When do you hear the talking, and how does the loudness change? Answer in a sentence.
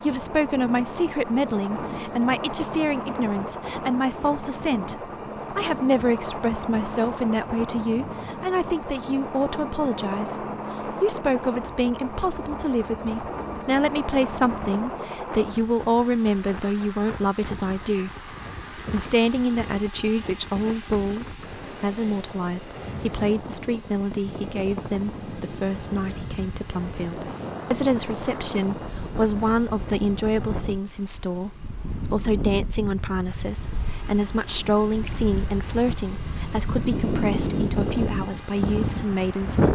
You can hear the talking from 0.0 to 39.6 s, at a steady volume.